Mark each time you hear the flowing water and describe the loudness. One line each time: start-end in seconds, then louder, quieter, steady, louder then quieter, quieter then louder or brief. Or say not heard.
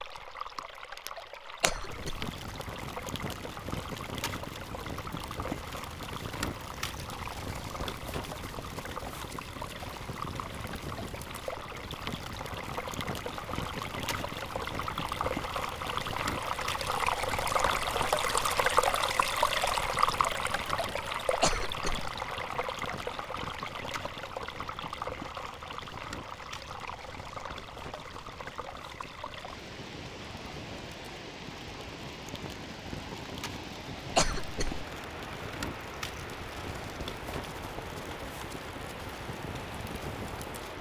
0.0-40.7 louder then quieter.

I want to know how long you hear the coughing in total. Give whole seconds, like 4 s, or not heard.
2 s.